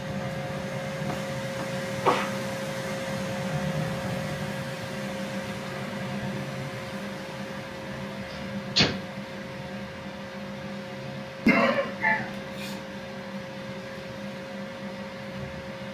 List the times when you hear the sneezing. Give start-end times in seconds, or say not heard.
1.1-2.3, 8.3-8.9, 11.4-12.8.